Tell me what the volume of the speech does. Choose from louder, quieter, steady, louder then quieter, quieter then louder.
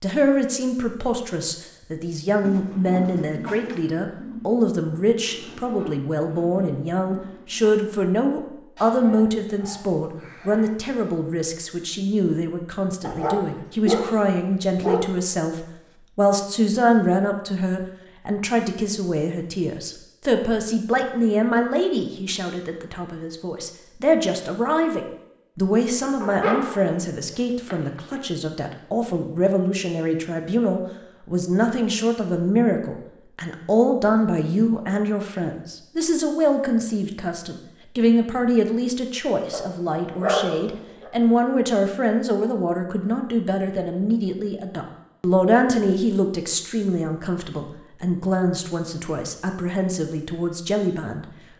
steady.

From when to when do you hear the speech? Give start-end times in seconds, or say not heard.
0.0-51.2.